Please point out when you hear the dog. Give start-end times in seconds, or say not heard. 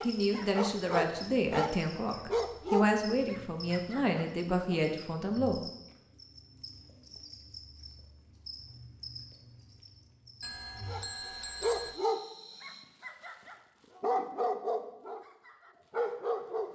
0.0-4.8, 10.8-16.6.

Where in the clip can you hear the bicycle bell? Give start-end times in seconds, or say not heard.
10.4-11.9.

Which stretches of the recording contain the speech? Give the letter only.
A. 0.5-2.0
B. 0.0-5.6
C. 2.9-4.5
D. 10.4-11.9
B.